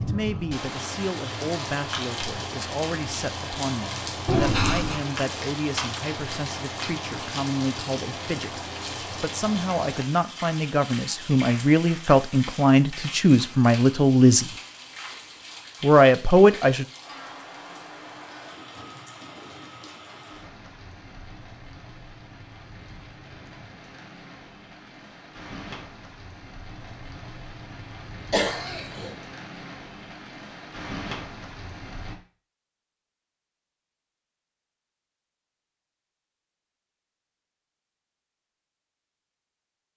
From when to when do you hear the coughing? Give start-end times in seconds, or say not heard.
4.2-5.0, 28.3-29.1.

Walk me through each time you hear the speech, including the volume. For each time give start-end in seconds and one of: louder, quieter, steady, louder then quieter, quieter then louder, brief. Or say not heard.
0.0-14.5 louder
15.8-16.9 brief.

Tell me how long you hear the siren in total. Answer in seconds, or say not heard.
not heard.